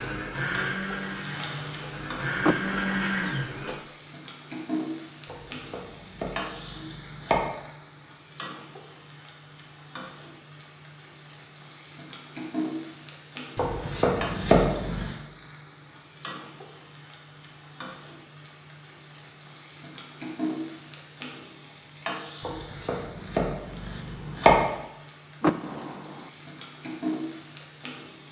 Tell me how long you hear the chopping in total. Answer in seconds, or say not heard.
6 s.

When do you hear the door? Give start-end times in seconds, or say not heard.
2.4-3.3, 25.4-26.3.